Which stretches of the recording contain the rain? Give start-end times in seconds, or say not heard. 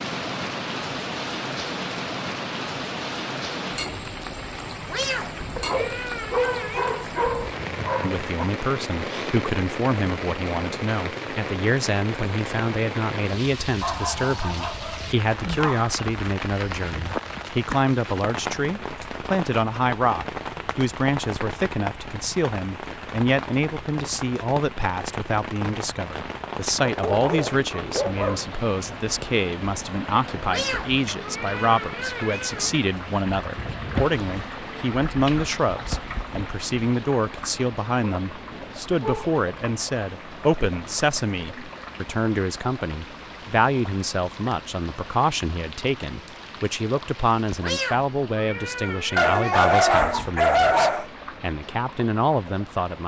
0.0-53.0.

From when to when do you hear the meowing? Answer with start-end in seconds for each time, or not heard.
4.8-7.0, 30.4-32.9, 47.6-49.6.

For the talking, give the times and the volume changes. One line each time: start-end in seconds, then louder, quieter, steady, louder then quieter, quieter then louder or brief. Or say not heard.
8.0-53.0 steady.